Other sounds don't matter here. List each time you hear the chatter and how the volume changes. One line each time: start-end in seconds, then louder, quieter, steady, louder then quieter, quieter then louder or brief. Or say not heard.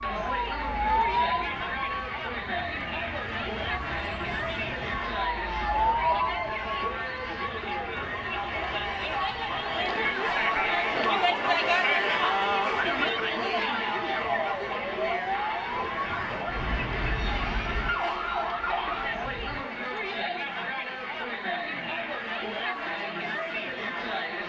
0.0-24.4 louder then quieter.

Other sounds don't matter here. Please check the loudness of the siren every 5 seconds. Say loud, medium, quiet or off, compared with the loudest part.
loud, loud, medium, loud, off.